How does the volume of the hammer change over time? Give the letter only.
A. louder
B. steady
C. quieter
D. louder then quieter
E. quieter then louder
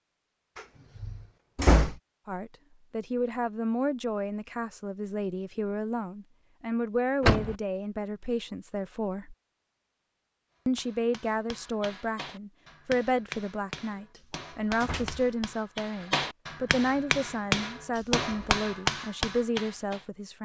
A.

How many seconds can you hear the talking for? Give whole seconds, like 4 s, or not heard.
17 s.